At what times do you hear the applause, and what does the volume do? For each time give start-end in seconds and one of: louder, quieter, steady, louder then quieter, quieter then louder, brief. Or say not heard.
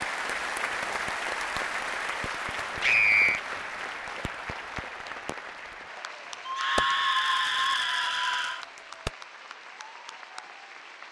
0.0-11.0 quieter.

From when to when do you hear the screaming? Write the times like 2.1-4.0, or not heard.
2.8-3.4, 6.5-8.7.